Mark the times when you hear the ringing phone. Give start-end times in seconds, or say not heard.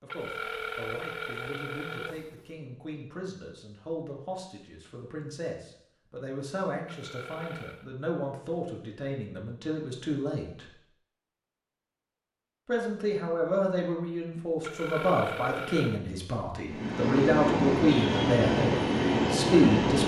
0.1-2.4, 6.8-7.9, 14.6-16.0.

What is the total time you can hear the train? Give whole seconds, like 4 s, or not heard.
3 s.